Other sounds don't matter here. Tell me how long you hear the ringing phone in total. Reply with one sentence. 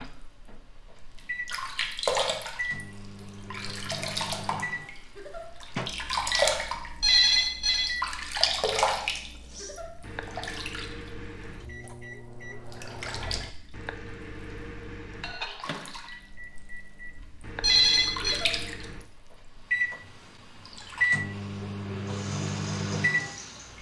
The ringing phone can be heard for 2 seconds in total.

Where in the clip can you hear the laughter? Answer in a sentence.
The laughter can be heard from 5.0 to 5.5 s, from 9.4 to 9.9 s and from 18.1 to 18.6 s.